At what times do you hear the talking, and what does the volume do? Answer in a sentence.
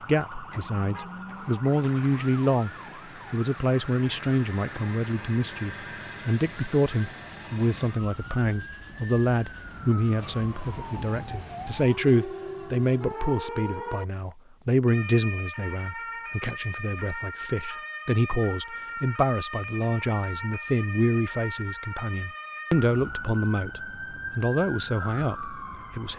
The talking can be heard briefly from 0.1 to 2.7 s; and from 3.3 to 26.1 s, at a steady volume.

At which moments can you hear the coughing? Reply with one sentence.
You can't hear the coughing here.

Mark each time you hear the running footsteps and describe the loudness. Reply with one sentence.
The running footsteps can't be heard in this clip.